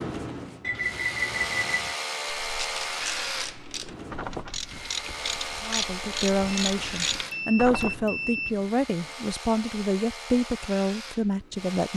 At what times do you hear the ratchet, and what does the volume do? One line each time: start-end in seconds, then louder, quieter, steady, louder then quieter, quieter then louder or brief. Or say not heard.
2.4-7.9 louder.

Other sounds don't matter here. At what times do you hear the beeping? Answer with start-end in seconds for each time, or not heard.
0.6-2.0, 6.5-8.6.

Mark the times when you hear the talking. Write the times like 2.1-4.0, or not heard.
5.6-11.9.